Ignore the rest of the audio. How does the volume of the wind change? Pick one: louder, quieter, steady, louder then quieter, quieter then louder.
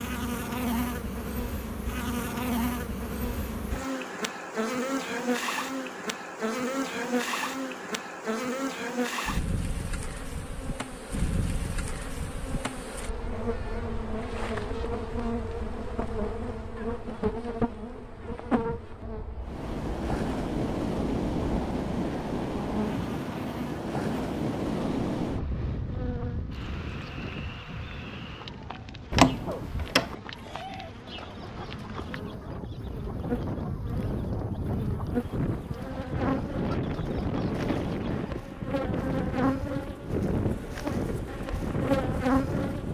quieter then louder.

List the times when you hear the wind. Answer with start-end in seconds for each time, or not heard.
19.4-42.9.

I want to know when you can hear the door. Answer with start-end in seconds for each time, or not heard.
29.1-30.1.